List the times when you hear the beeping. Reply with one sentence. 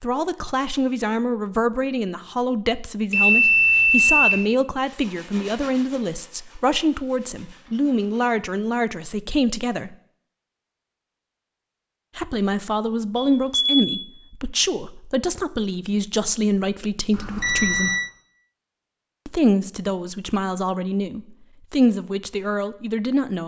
You can hear the beeping from 3.1 to 4.5 s, from 13.2 to 13.9 s and from 17.1 to 18.0 s.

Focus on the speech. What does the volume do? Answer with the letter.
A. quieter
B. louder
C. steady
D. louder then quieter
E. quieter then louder
C.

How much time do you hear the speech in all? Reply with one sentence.
You can hear the speech for 20 seconds altogether.